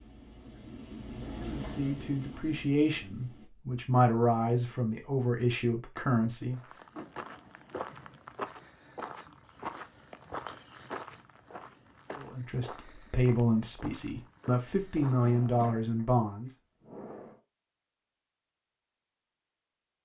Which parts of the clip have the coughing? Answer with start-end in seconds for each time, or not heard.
not heard.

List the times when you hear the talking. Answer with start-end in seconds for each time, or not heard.
1.4-6.6, 12.2-16.6.